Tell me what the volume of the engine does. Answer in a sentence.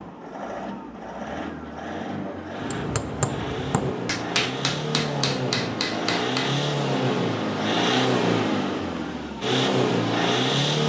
The loudness of the engine goes up.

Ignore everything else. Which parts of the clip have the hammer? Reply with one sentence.
The hammer can be heard from 2.6 to 6.5 s.